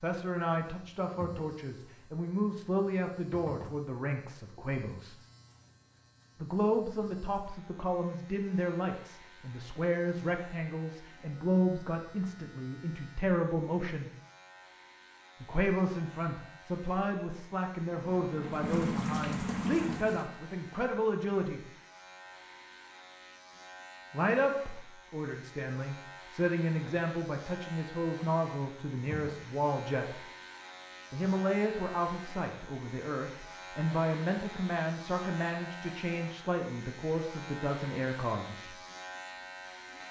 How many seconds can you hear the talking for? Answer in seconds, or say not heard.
33 s.